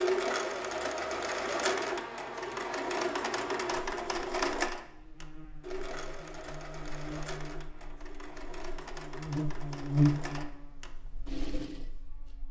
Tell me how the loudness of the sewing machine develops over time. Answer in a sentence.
The volume of the sewing machine goes down.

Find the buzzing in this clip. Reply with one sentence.
You can hear the buzzing from 0.0 to 12.4 s.